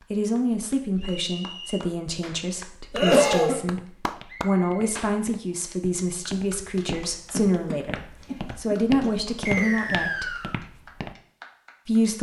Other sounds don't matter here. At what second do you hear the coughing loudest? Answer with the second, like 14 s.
3 s.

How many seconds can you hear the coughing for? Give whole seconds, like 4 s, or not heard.
3 s.